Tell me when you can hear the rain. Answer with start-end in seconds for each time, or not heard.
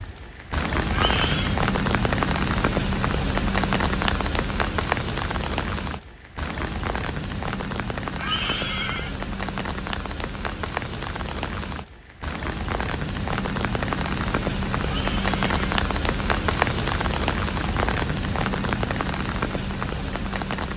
0.0-20.7.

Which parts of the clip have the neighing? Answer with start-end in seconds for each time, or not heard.
0.9-1.6, 8.2-9.2, 14.8-15.6.